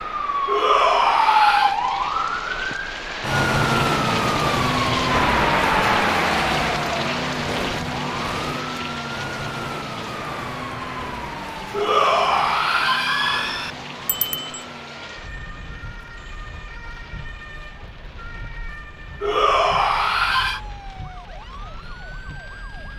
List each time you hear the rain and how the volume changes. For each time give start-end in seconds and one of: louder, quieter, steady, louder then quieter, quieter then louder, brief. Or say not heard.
0.0-22.9 louder then quieter.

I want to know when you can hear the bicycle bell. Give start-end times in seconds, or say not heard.
14.1-14.7.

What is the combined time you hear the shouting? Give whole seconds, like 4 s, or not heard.
5 s.